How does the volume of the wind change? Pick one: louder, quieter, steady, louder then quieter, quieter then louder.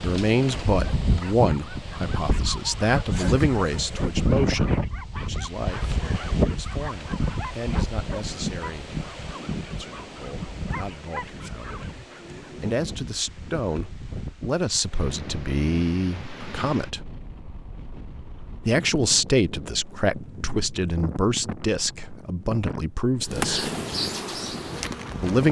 quieter.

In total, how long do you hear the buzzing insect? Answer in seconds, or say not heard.
2 s.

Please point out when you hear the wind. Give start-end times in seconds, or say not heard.
0.0-25.4.